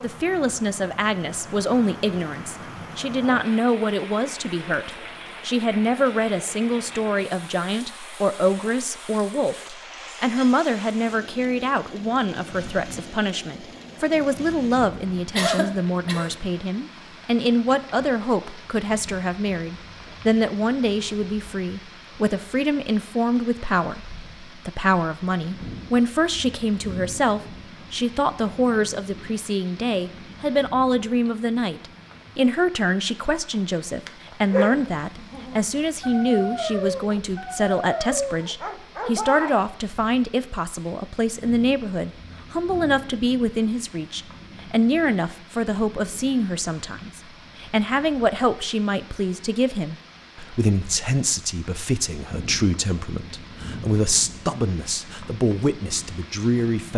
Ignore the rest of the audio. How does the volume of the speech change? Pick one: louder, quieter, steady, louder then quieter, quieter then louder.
steady.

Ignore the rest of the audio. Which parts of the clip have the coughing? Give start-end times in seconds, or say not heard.
15.3-16.4.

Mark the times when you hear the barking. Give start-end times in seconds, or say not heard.
34.0-39.5.